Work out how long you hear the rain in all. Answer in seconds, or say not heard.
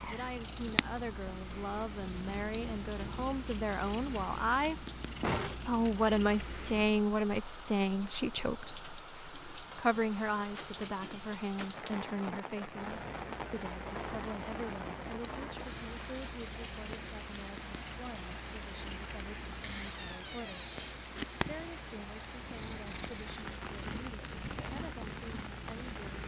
26 s.